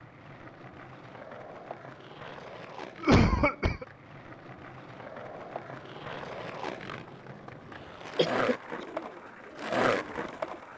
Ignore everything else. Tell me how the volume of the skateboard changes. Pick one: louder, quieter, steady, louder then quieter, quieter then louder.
louder.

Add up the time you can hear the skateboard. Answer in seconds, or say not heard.
11 s.